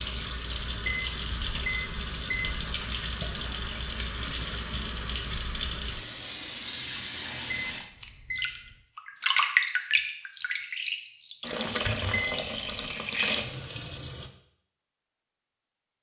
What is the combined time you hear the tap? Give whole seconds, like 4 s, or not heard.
14 s.